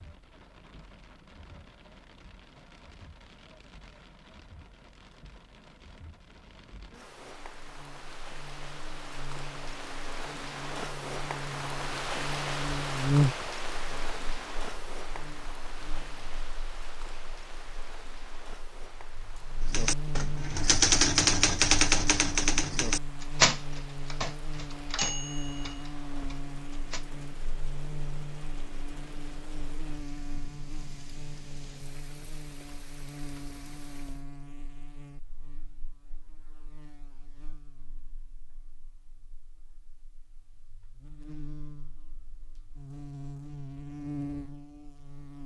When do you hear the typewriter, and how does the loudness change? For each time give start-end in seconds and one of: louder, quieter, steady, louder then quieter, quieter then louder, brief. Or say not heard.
19.7-27.1 quieter.